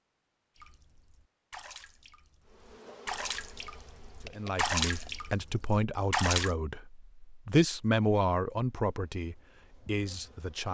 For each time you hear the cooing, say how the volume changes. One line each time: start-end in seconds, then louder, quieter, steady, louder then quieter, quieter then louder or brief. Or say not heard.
not heard.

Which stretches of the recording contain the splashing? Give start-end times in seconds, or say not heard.
0.6-6.5.